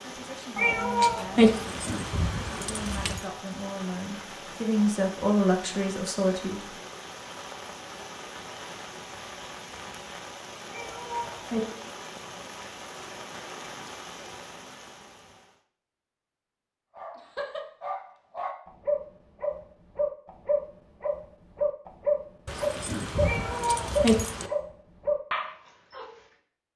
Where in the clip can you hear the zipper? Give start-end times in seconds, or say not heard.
not heard.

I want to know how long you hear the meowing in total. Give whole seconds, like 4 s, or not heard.
3 s.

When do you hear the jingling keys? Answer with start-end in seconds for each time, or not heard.
1.4-3.2, 22.4-24.5.